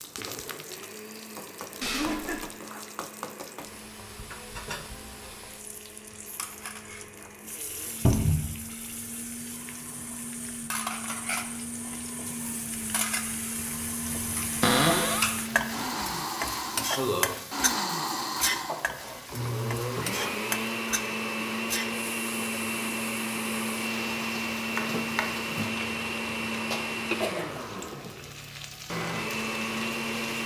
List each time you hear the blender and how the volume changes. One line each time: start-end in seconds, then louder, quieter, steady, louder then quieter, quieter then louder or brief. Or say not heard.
0.1-30.4 louder.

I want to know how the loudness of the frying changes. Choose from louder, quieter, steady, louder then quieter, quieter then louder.
louder then quieter.